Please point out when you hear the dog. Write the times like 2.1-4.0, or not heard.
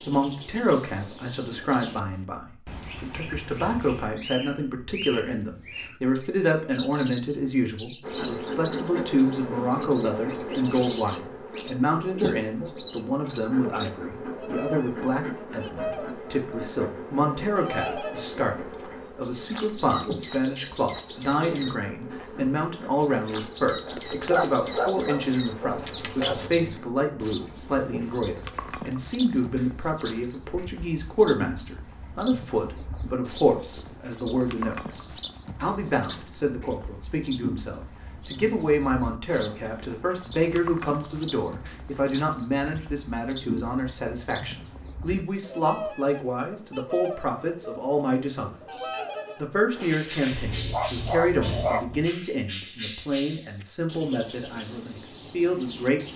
23.9-26.5, 50.3-52.1.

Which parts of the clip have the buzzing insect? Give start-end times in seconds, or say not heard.
8.0-28.7.